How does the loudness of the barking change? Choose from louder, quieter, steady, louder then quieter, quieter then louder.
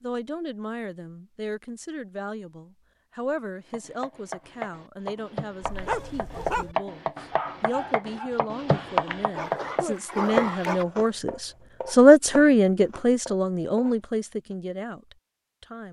quieter then louder.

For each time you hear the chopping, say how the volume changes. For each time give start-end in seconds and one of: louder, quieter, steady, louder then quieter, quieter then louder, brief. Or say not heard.
3.6-14.6 louder then quieter.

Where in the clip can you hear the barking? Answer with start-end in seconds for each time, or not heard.
5.6-10.8.